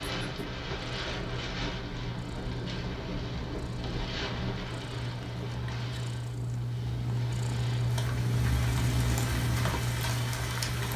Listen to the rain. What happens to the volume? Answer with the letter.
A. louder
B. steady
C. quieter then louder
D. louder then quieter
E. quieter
C.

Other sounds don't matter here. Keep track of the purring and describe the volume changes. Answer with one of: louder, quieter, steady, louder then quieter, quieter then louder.
louder.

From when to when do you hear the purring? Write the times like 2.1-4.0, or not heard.
0.0-10.9.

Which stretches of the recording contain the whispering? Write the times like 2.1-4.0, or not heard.
not heard.